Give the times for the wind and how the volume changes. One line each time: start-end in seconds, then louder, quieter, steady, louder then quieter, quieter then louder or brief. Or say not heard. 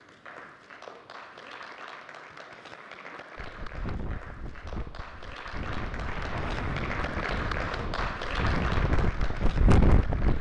3.4-10.3 louder.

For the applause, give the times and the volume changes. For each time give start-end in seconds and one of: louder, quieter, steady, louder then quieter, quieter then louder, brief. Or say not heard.
0.0-10.3 louder.